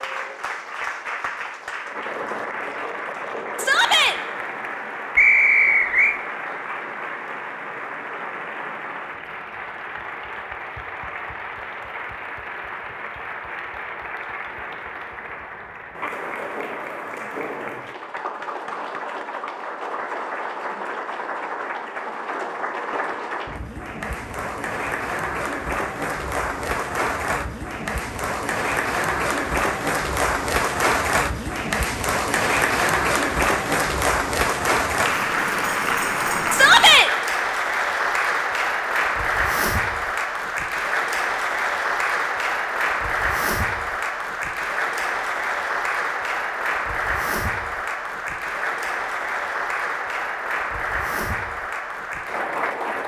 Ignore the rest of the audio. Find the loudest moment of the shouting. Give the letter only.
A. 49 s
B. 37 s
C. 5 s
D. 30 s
B.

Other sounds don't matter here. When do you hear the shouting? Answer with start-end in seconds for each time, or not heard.
3.5-4.2, 36.5-37.1.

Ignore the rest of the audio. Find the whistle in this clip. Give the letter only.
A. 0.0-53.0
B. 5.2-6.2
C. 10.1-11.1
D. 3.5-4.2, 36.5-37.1
B.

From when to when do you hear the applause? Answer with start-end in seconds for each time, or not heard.
0.0-53.0.